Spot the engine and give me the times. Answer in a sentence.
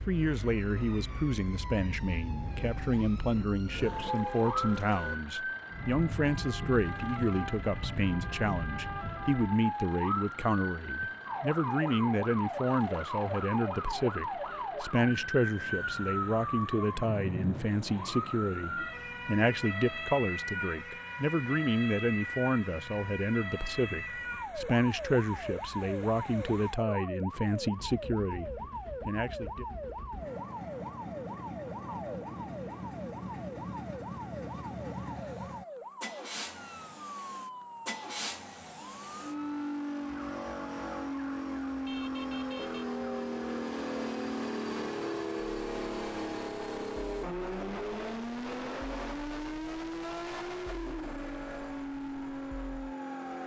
You can hear the engine from 0.0 to 53.4 s.